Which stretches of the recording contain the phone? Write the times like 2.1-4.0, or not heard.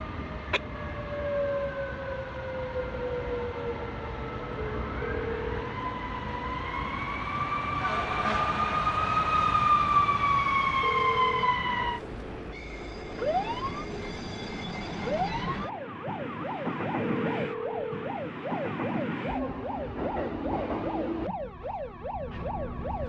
5.0-5.8, 10.8-11.6, 17.0-18.1.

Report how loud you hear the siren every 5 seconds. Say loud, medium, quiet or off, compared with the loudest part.
quiet, loud, loud, medium, medium.